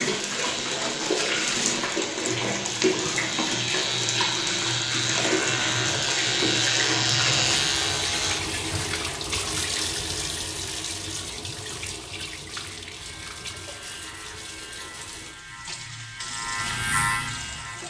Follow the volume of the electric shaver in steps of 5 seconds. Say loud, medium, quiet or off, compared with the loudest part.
medium, loud, quiet, medium.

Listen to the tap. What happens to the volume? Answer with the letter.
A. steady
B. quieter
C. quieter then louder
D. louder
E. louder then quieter
B.